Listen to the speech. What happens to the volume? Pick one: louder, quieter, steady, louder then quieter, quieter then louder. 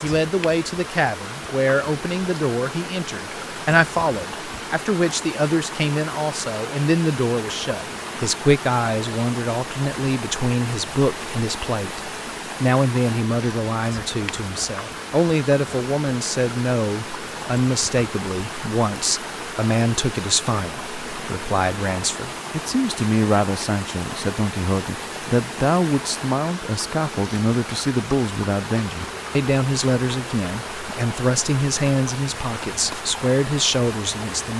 steady.